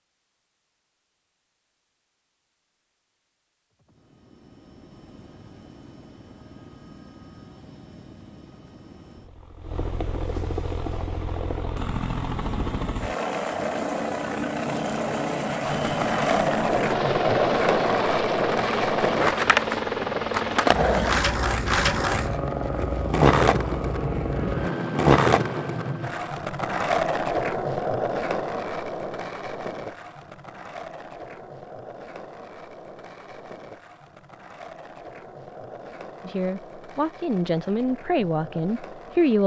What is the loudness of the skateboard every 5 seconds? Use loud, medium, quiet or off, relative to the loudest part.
off, off, off, loud, loud, loud, quiet, quiet.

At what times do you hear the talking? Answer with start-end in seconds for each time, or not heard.
36.2-39.4.